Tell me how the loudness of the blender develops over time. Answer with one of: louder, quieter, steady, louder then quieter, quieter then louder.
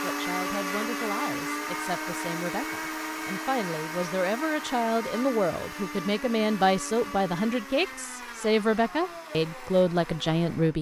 quieter.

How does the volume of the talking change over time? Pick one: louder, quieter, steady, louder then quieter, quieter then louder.
louder.